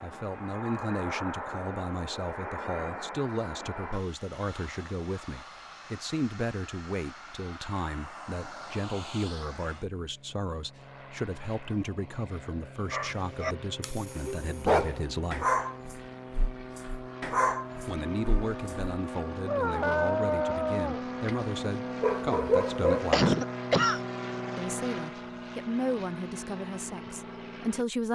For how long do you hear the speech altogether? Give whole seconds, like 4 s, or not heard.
25 s.